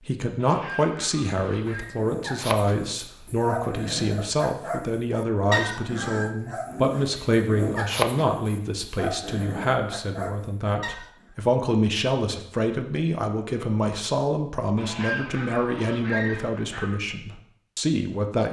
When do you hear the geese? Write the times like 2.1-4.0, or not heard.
0.3-1.9, 14.8-16.9.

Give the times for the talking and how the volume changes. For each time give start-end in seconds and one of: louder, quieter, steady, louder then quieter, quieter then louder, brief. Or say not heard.
0.0-18.4 steady.